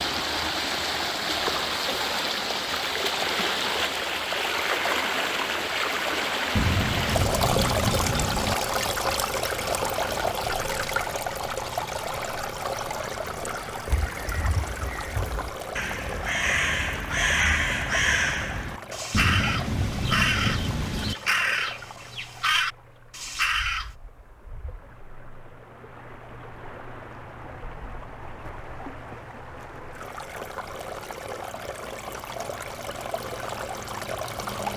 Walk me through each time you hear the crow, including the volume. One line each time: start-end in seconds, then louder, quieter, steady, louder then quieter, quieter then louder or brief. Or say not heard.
13.7-23.9 louder.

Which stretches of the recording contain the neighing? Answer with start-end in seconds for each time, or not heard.
not heard.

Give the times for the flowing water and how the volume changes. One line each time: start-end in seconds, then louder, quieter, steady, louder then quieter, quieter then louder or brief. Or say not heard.
0.0-34.7 quieter then louder.